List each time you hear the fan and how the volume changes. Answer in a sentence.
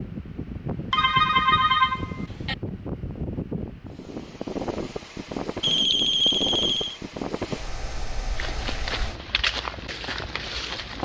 The fan can be heard from 0.0 to 9.2 s, at a steady volume.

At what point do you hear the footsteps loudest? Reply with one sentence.
The loudest moment of the footsteps is at 10 seconds.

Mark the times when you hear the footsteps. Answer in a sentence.
The footsteps can be heard from 8.3 to 11.0 s.